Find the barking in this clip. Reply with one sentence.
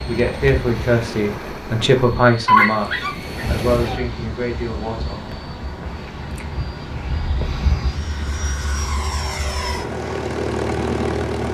You can hear the barking from 2.5 to 4.0 s.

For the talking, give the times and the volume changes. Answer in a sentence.
You can hear the talking from 0.1 to 5.3 s, getting quieter.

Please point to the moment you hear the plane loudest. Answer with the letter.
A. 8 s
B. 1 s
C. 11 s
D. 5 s
C.